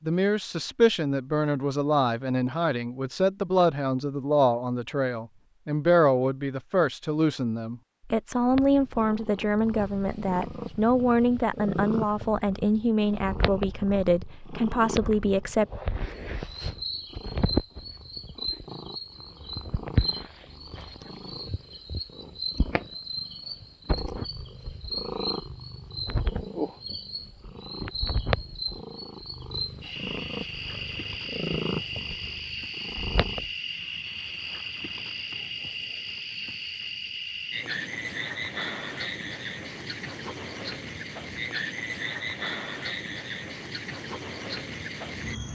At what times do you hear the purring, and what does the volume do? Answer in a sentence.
The purring can be heard from 8.5 to 33.5 s, at a steady volume.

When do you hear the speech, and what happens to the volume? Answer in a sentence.
The speech can be heard from 0.0 to 15.7 s, at a steady volume.